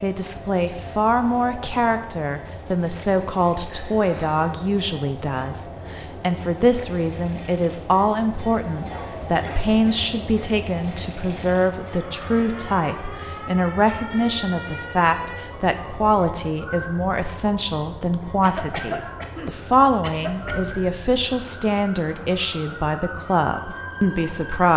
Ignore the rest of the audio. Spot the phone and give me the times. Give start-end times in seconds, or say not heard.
not heard.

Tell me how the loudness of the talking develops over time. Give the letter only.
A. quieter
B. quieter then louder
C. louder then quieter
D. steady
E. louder
D.